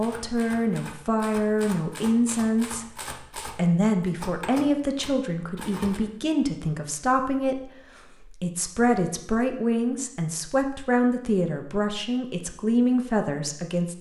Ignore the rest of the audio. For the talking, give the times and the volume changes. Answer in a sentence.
You can hear the talking from 0.0 to 13.9 s, at a steady volume.